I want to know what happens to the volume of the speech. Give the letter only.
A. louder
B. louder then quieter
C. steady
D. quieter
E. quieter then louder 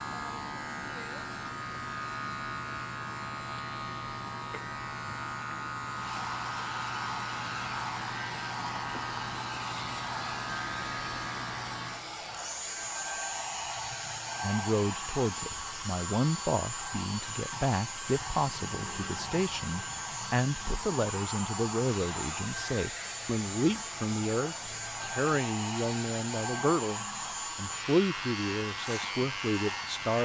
C.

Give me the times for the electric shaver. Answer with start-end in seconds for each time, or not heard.
0.0-30.2.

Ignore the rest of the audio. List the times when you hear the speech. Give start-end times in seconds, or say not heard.
14.4-30.2.